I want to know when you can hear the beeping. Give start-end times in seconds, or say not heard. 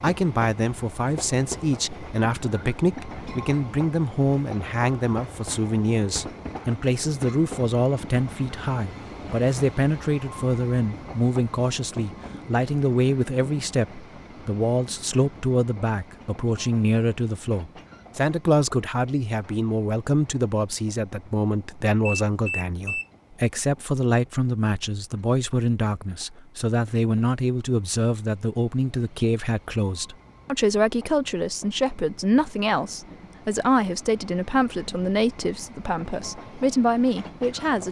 22.1-23.1.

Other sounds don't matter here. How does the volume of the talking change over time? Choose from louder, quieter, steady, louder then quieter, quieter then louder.
steady.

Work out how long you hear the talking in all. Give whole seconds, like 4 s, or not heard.
38 s.